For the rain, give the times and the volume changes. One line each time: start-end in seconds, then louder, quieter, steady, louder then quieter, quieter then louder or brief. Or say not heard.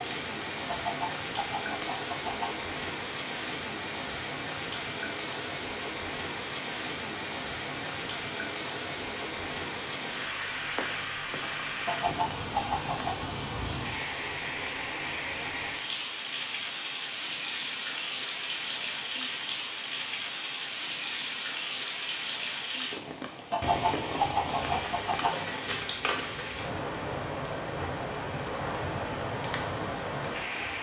0.0-30.7 steady.